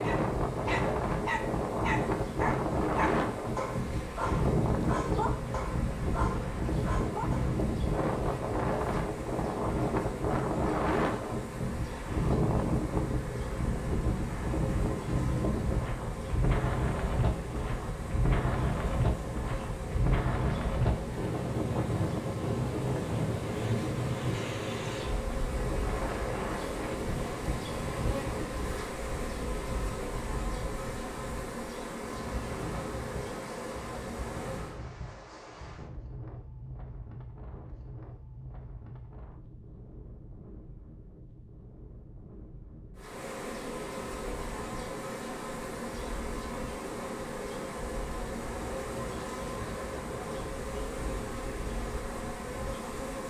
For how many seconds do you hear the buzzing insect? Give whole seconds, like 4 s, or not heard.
45 s.